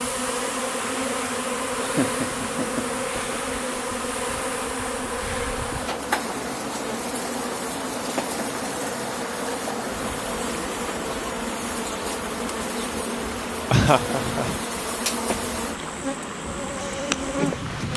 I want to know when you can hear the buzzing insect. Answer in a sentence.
You can hear the buzzing insect from 0.0 to 17.9 s.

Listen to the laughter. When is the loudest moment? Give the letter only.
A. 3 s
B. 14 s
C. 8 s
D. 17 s
B.